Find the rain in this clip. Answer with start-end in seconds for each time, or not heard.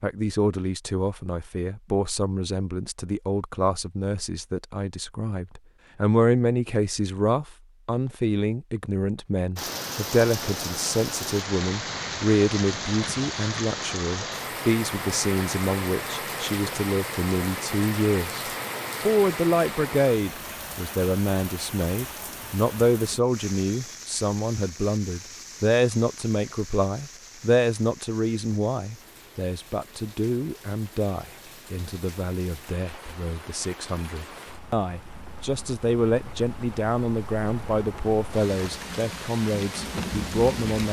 9.6-40.8.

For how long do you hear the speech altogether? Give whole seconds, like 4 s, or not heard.
40 s.